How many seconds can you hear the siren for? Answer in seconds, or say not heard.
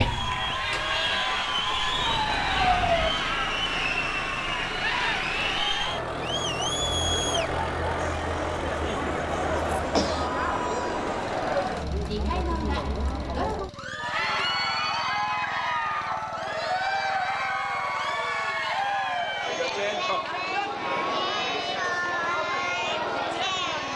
3 s.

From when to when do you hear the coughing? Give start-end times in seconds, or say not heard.
9.6-10.3.